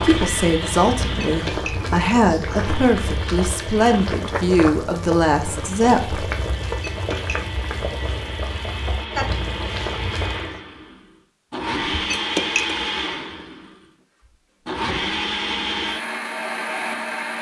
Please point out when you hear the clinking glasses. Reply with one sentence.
The clinking glasses can be heard from 1.2 to 1.9 s, from 6.9 to 7.3 s and from 12.1 to 12.8 s.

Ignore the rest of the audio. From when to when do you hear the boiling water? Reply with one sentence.
The boiling water can be heard from 0.0 to 10.6 s.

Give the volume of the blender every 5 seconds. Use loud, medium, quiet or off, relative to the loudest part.
medium, medium, loud, loud.